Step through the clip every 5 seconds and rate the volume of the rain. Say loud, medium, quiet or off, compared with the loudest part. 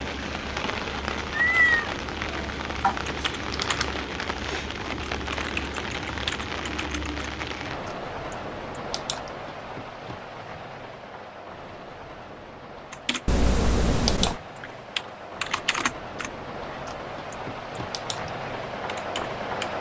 loud, loud, medium, loud.